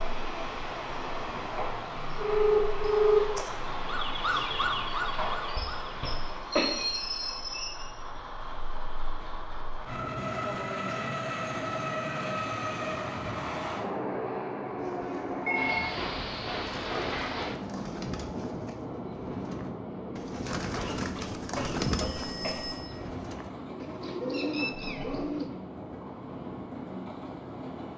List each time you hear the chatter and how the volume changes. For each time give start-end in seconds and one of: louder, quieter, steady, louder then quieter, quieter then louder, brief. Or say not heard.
not heard.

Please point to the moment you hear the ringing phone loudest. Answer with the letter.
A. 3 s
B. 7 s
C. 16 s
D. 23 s
A.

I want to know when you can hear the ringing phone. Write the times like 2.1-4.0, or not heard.
2.1-3.5, 15.0-15.8, 21.9-22.9.